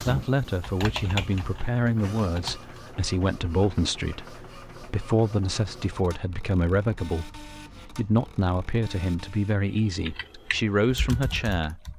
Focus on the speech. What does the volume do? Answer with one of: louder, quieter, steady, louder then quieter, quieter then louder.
steady.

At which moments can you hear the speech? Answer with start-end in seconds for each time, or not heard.
0.0-11.9.